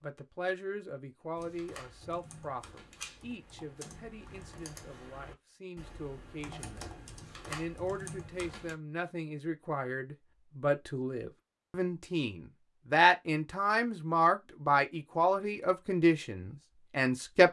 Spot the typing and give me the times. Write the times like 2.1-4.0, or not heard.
1.4-8.8.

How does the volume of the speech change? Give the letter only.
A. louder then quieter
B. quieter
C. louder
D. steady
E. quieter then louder
E.